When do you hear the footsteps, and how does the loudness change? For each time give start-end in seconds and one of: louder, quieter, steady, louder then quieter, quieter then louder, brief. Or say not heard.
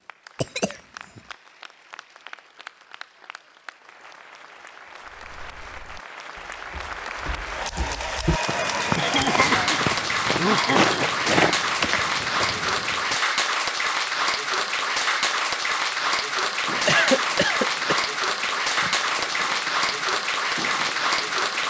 5.0-13.2 louder.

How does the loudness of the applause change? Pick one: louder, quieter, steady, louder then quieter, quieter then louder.
louder.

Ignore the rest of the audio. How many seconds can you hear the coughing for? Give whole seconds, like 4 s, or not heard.
4 s.